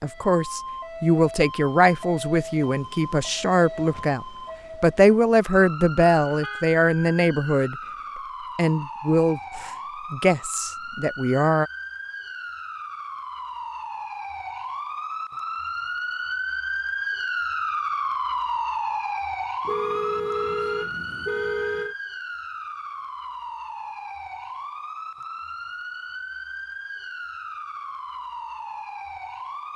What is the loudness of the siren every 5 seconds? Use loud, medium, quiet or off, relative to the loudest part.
medium, medium, medium, loud, medium, medium.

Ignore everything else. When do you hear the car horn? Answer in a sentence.
The car horn can be heard from 6.2 to 6.7 s and from 19.6 to 21.9 s.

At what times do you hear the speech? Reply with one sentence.
The speech can be heard from 0.0 to 7.8 s and from 8.6 to 11.7 s.